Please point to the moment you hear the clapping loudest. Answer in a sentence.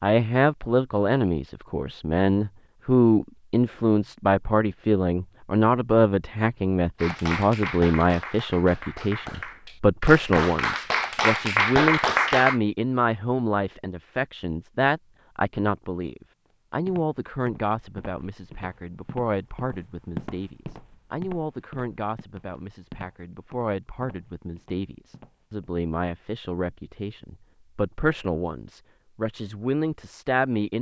The loudest moment of the clapping is at 12 seconds.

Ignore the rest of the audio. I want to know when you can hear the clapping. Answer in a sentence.
You can hear the clapping from 7.0 to 12.6 s.